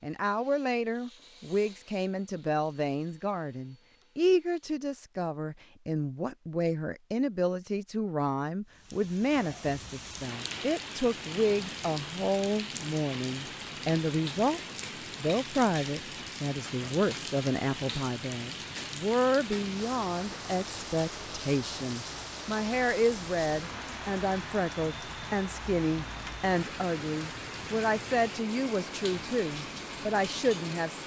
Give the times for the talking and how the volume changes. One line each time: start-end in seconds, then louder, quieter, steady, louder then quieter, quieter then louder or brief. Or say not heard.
0.0-31.0 steady.